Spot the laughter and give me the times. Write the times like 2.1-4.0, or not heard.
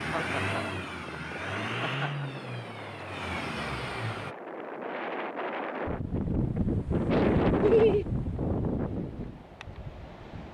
0.1-0.8, 1.8-2.3, 7.6-8.1.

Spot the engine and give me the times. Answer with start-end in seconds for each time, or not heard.
0.0-4.3.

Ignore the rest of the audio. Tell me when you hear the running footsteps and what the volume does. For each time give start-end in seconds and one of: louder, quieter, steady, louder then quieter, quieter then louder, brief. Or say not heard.
not heard.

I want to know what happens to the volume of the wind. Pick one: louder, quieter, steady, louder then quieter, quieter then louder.
louder then quieter.